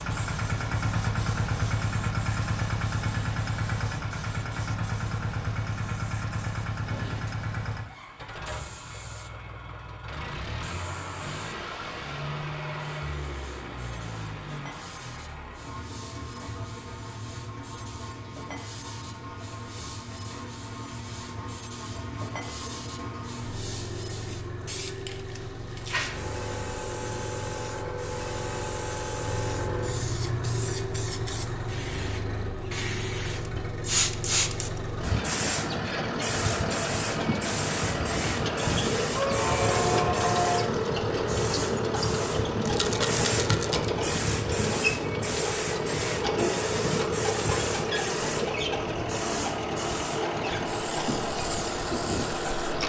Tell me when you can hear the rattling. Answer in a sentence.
The rattling can be heard from 42.6 to 43.9 s.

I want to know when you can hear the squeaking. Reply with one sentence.
The squeaking can be heard from 39.1 to 40.7 s.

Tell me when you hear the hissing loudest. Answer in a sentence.
The loudest moment of the hissing is at 34 seconds.